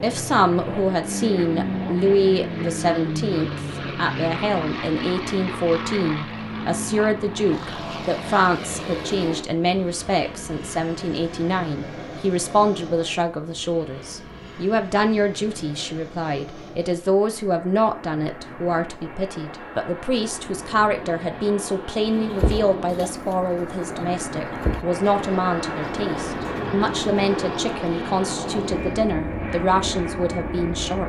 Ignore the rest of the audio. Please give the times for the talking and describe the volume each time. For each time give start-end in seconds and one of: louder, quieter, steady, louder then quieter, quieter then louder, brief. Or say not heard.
0.0-31.0 steady.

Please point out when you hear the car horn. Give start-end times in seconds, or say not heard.
not heard.